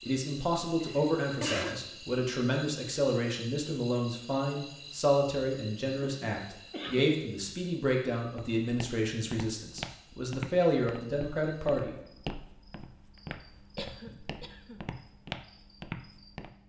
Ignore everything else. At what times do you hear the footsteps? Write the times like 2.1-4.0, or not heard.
8.3-16.5.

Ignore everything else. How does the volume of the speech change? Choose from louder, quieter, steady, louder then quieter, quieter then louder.
steady.